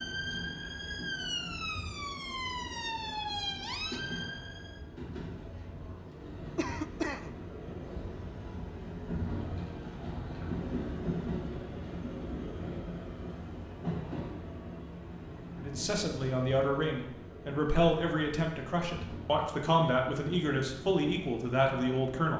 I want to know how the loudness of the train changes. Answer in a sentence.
The volume of the train goes up, then down.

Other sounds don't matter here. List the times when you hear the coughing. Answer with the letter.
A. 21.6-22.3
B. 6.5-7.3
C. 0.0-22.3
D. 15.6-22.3
B.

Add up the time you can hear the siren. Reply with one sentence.
The siren can be heard for 5 seconds in total.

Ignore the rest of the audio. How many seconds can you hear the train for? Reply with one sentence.
You can hear the train for 22 seconds altogether.